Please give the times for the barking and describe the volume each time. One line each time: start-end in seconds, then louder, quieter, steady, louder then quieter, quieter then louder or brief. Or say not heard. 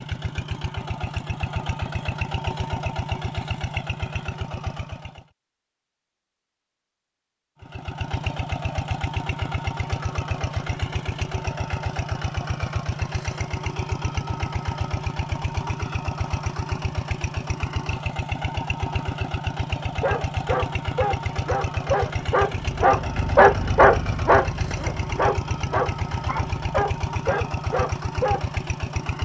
19.9-28.6 louder then quieter.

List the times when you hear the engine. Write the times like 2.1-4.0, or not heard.
0.0-5.2, 7.6-29.2.